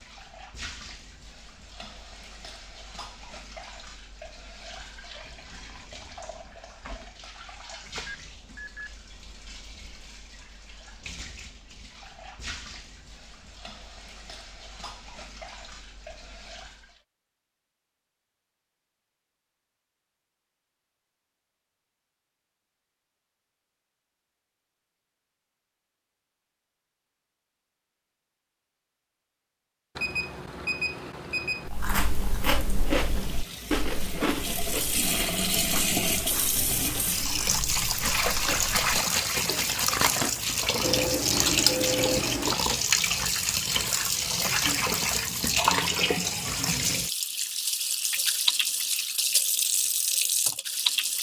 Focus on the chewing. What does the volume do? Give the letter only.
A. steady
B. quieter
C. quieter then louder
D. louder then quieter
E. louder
C.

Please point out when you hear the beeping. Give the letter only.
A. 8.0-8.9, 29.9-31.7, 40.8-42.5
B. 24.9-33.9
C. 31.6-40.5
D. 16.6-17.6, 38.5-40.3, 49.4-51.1
A.